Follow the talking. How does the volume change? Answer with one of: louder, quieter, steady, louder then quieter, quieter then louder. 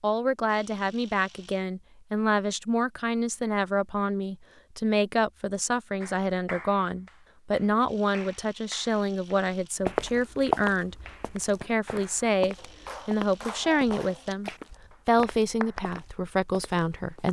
steady.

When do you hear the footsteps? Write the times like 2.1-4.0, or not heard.
9.8-17.2.